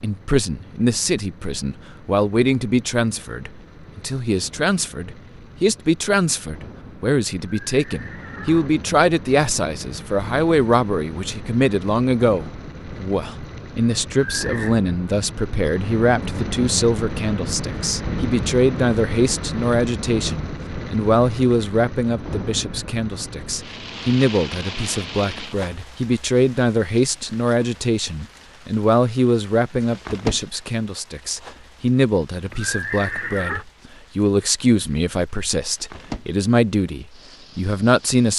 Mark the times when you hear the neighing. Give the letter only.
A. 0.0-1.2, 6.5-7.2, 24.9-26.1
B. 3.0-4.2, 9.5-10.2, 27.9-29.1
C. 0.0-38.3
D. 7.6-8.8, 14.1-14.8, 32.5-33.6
D.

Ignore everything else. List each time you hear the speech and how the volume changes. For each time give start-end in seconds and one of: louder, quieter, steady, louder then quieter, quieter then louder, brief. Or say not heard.
0.0-38.3 steady.